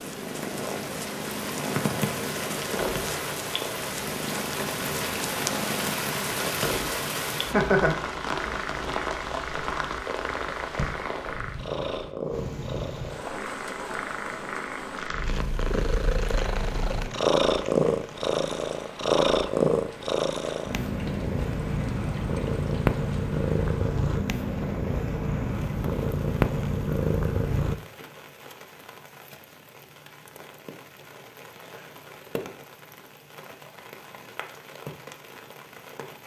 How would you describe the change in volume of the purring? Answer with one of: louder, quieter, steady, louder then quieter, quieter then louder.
louder.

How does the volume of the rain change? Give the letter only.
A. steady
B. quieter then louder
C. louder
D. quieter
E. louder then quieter
D.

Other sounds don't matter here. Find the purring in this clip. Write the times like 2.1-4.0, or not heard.
0.0-27.8.